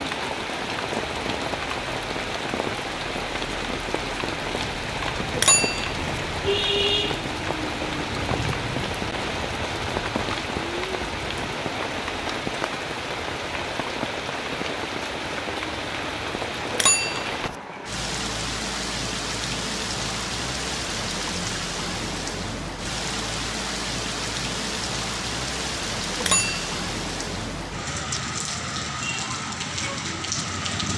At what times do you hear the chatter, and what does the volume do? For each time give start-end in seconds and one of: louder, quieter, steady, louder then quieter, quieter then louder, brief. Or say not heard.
not heard.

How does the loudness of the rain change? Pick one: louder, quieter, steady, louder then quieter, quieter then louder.
steady.